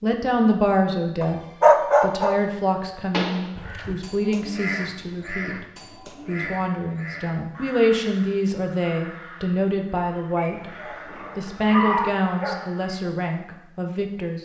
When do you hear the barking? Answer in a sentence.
You can hear the barking from 1.2 to 2.4 s and from 10.3 to 12.6 s.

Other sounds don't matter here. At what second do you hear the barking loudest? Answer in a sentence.
The volume of the barking peaks at 2 seconds.